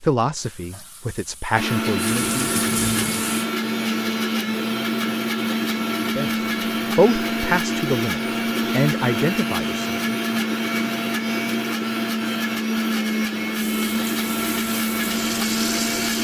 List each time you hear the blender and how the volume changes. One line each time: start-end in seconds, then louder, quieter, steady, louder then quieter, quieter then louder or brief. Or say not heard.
1.6-16.2 steady.